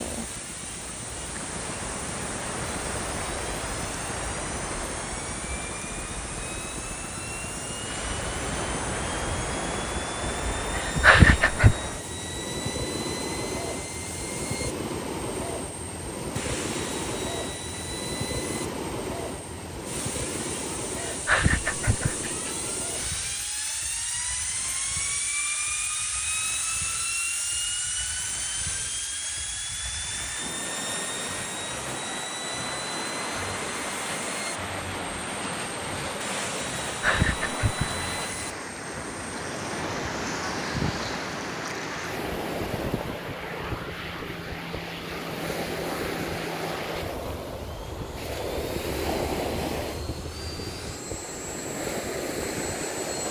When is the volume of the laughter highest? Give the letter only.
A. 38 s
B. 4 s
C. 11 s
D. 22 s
C.